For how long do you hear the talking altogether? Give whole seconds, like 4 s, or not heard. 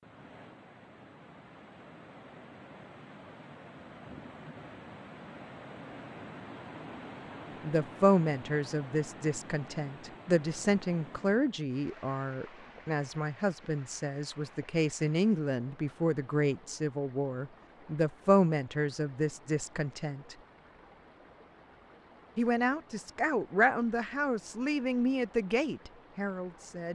17 s.